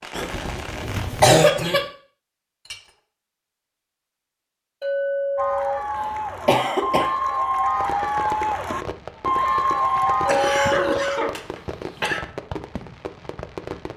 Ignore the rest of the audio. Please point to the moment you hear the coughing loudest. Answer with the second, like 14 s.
1 s.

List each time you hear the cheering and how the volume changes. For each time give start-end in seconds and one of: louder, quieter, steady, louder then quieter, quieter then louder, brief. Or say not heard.
5.3-10.8 louder.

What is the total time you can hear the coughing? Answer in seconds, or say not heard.
4 s.